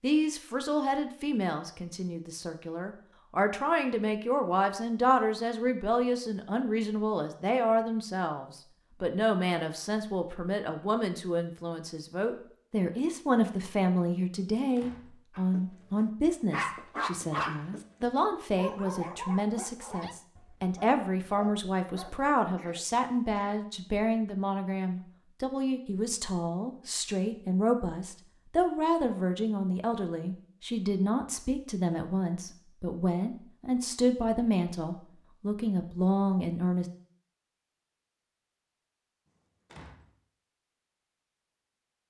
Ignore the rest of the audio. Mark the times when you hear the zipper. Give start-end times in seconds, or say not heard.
not heard.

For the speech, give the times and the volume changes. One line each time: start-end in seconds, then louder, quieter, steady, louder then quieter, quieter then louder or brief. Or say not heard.
0.0-36.9 steady.